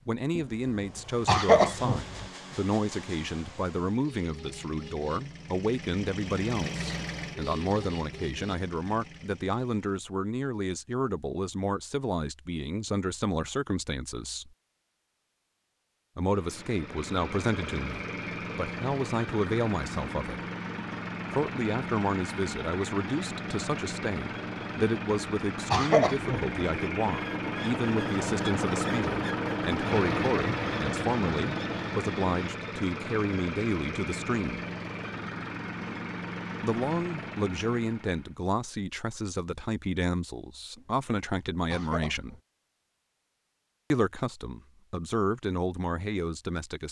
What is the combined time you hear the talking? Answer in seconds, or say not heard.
41 s.